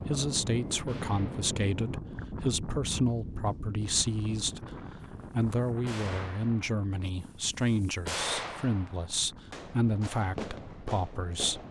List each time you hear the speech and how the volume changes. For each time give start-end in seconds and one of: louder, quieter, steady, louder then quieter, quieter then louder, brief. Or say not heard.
0.0-11.6 steady.